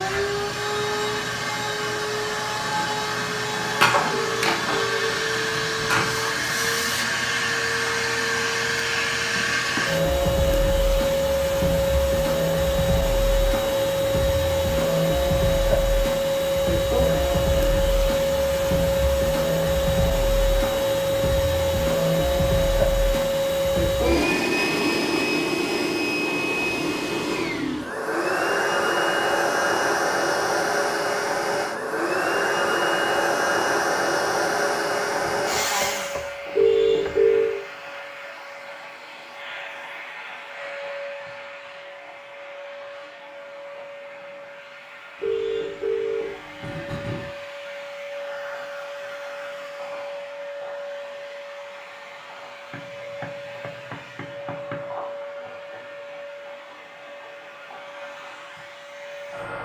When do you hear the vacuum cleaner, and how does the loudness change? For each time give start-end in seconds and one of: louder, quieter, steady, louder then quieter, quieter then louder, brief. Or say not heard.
0.0-59.6 quieter.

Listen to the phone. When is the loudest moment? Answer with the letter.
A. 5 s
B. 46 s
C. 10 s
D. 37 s
D.